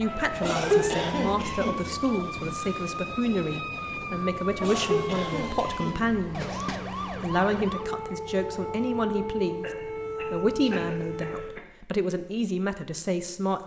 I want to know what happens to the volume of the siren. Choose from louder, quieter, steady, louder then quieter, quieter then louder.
steady.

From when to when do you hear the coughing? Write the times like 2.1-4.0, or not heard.
0.4-1.8, 4.6-6.8, 9.6-11.6.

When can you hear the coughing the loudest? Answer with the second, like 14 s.
1 s.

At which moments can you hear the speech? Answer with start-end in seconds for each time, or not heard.
0.0-6.6, 7.2-13.6.